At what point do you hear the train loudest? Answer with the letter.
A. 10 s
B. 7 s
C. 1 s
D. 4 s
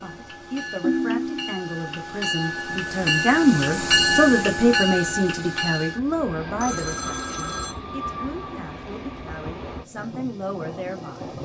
D.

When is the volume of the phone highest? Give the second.
1 s.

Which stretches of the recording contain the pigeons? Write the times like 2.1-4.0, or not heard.
not heard.